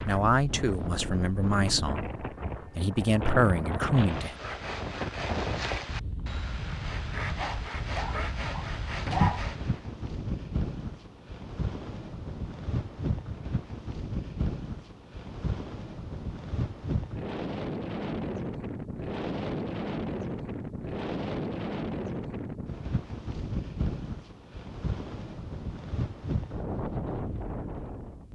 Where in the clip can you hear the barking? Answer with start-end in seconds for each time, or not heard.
7.3-9.4.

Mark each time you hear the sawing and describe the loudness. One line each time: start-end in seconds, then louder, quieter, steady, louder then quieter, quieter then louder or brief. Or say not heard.
4.0-9.8 steady.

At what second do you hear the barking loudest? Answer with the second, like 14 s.
9 s.